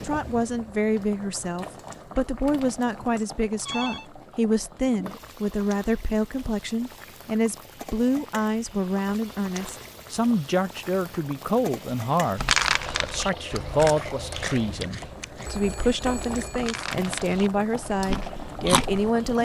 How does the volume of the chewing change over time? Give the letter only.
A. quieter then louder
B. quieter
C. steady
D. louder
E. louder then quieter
A.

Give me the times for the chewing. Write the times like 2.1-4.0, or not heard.
12.3-19.1.